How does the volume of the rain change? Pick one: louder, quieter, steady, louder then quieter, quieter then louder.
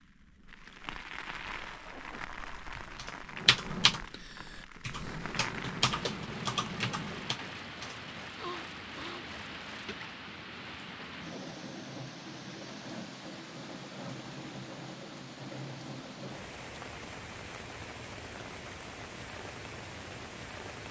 steady.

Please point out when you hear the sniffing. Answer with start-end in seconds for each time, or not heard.
8.4-9.2.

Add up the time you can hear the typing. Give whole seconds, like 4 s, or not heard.
5 s.